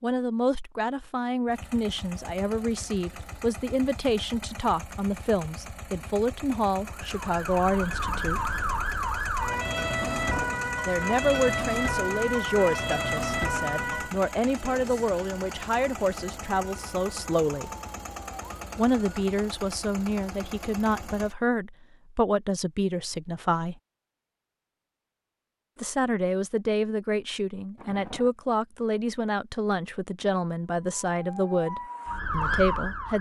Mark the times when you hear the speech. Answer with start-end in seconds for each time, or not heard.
0.0-8.6, 10.8-17.7, 18.8-23.8, 25.8-33.1.